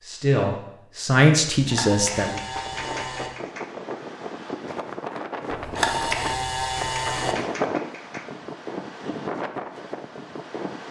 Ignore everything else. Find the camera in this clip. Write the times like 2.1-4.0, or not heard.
1.5-3.3, 5.5-7.3.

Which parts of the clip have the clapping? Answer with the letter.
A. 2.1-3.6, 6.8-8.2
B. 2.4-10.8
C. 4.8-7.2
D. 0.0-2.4
A.